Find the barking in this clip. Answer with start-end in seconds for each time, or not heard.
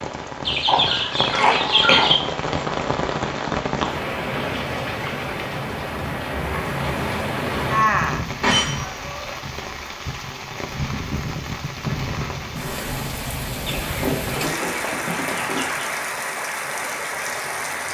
not heard.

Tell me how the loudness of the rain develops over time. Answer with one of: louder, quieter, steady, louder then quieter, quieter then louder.
steady.